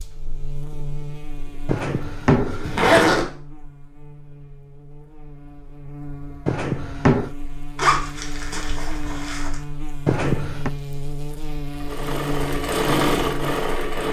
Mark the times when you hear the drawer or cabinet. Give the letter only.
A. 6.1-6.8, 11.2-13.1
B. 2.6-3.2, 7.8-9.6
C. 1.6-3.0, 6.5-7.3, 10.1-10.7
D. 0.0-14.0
C.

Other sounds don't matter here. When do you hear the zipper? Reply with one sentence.
You can hear the zipper from 2.6 to 3.2 s and from 7.8 to 9.6 s.